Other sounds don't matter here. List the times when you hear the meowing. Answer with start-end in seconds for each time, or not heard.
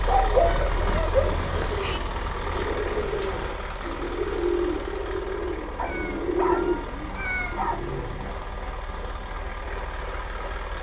0.5-2.0, 5.8-8.3.